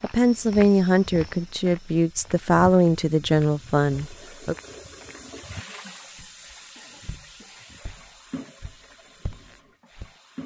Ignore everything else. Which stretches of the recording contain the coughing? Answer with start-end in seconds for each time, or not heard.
6.8-7.9.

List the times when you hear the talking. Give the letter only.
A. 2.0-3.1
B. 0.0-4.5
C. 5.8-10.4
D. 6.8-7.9
B.